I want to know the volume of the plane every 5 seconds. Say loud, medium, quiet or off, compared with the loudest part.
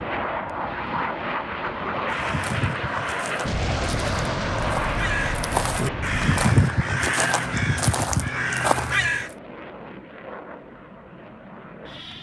loud, medium, quiet.